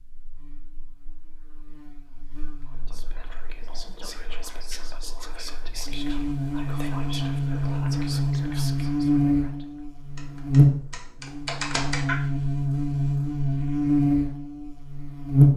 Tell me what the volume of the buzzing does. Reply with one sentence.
The loudness of the buzzing goes up.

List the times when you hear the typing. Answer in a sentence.
You can hear the typing from 10.2 to 12.2 s.